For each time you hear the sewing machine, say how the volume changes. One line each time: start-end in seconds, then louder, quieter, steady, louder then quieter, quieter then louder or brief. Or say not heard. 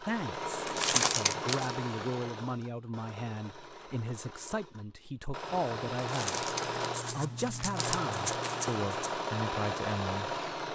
0.0-10.6 quieter then louder.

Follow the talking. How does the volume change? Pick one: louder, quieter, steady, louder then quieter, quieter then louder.
steady.